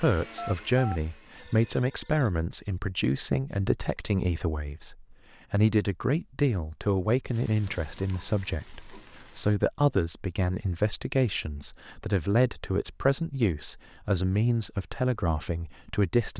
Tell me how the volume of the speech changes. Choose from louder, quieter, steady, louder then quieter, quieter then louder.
steady.